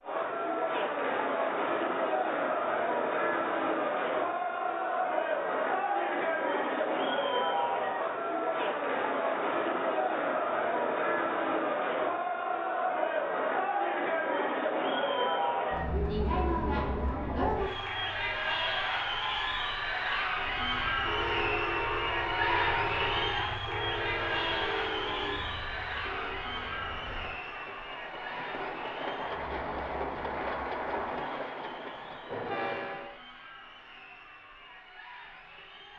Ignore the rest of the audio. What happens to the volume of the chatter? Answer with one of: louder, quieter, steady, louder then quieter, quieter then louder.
quieter.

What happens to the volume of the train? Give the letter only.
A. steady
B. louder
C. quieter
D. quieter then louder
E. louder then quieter
D.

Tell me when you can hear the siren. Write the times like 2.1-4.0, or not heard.
not heard.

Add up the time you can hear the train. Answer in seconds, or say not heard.
13 s.